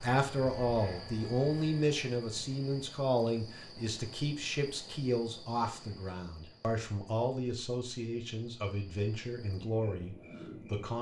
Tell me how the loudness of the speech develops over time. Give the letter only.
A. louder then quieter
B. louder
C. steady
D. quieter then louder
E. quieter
E.